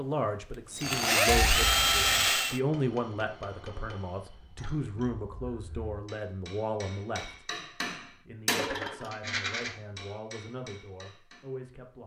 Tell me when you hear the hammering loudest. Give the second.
9 s.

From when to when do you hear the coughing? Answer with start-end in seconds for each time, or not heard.
not heard.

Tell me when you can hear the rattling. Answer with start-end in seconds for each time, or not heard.
9.1-9.7.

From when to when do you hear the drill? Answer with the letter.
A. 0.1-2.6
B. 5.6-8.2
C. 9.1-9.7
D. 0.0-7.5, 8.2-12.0
A.